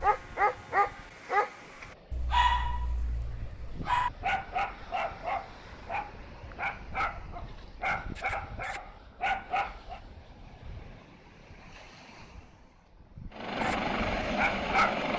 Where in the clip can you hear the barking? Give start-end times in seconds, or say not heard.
0.0-10.0, 13.6-15.1.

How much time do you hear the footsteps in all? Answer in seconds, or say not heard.
not heard.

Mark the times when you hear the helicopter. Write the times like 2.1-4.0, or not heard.
13.3-15.1.